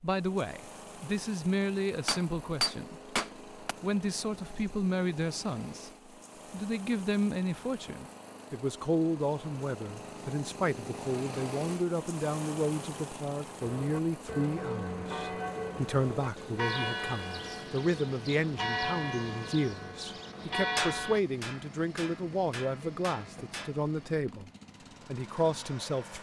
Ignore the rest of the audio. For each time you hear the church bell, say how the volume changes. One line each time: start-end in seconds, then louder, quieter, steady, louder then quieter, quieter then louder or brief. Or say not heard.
13.6-21.2 steady.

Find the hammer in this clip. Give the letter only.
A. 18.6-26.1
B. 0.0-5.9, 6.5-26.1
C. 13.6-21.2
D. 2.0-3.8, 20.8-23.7
D.